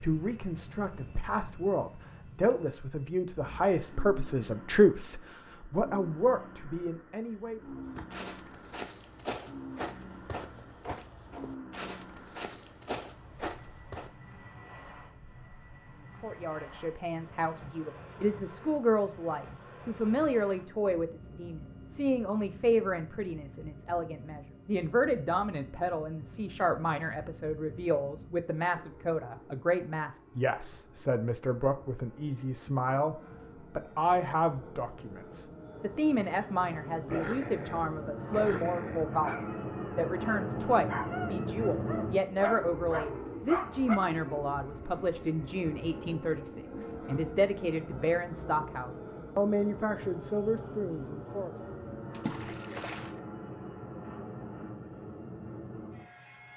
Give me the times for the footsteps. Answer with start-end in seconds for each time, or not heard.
7.8-14.2.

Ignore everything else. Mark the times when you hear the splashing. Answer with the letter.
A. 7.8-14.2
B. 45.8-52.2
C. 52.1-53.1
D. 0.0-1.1
C.